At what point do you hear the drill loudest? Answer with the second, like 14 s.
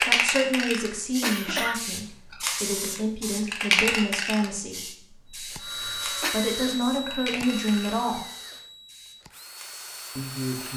6 s.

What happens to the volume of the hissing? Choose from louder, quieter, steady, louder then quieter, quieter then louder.
louder then quieter.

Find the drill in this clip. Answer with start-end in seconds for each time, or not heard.
5.3-10.7.